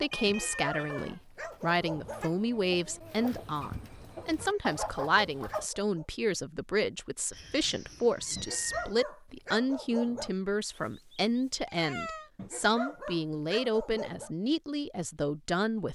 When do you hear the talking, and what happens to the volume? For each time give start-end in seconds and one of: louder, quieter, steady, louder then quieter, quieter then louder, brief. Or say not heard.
0.0-15.9 steady.